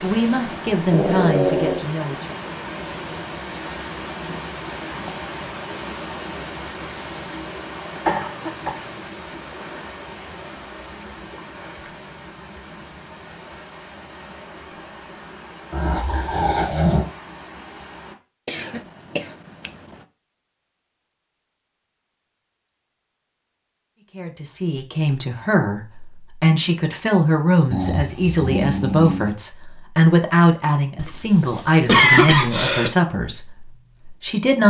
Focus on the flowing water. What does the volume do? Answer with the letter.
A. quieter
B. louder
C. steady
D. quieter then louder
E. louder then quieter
A.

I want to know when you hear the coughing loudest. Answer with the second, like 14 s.
32 s.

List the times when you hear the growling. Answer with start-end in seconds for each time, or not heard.
0.9-1.9, 15.7-17.1, 27.7-29.4.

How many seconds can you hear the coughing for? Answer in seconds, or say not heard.
4 s.